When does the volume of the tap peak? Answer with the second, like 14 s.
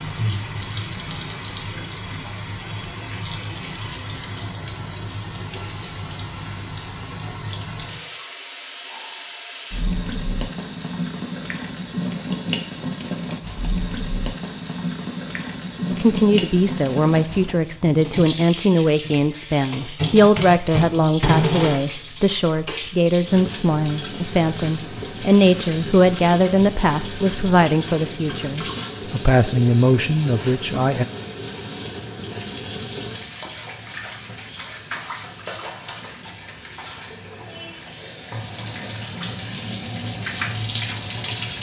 21 s.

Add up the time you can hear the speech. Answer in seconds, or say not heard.
15 s.